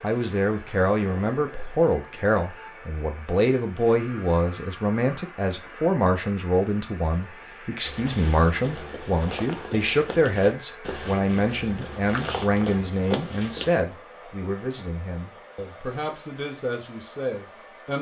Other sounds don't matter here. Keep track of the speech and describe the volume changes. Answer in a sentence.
The volume of the speech goes down.